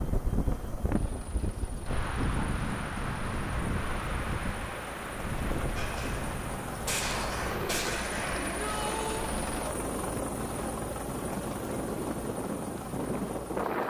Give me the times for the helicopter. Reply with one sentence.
You can hear the helicopter from 0.0 to 13.8 s.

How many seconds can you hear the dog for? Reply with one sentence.
You can't hear the dog here.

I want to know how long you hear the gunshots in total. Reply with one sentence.
The gunshots can be heard for 3 seconds in total.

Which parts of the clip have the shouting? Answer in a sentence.
You can hear the shouting from 8.4 to 9.2 s.